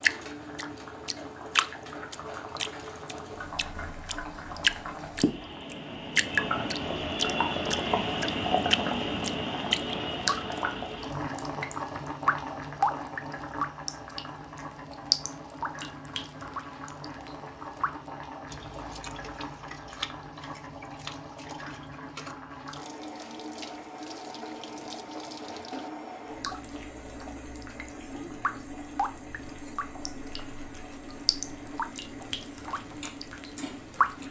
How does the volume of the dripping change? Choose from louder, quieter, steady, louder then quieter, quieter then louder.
quieter then louder.